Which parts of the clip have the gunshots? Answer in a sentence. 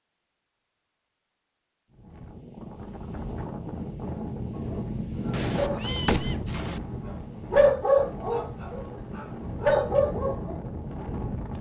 The gunshots can be heard from 5.3 to 6.8 s.